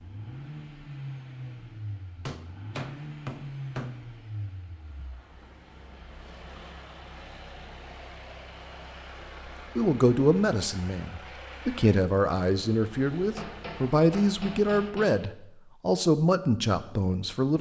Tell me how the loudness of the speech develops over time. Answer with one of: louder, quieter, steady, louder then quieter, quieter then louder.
steady.